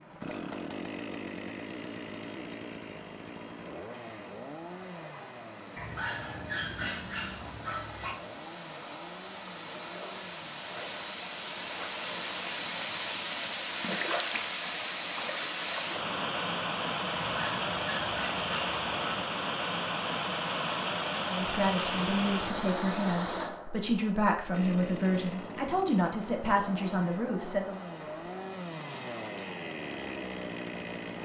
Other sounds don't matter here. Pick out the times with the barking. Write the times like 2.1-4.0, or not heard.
5.8-8.2, 17.1-19.2.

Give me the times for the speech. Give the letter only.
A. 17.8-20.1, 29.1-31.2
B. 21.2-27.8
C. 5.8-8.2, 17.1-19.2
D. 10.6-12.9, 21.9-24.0
B.